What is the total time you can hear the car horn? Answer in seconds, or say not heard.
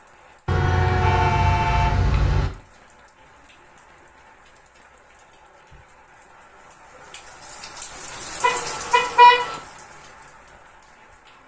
3 s.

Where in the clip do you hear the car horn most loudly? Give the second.
9 s.